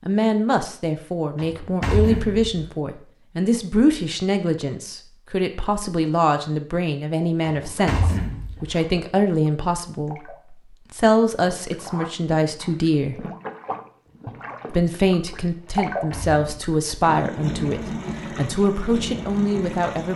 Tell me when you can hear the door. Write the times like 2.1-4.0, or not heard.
1.4-2.6, 7.4-8.7, 15.7-16.8.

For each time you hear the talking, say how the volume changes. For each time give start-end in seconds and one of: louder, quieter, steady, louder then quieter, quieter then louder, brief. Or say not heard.
0.0-13.2 steady
14.7-20.1 steady.